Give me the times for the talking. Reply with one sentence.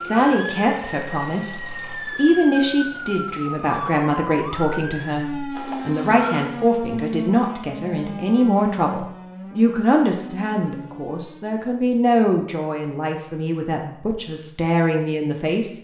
The talking can be heard from 0.0 to 15.7 s.